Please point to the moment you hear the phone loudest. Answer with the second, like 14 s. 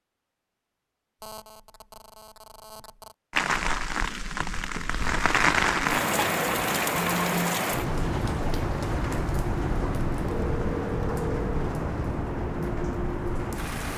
7 s.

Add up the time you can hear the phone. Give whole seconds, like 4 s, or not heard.
4 s.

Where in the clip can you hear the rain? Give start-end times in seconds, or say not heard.
3.3-13.9.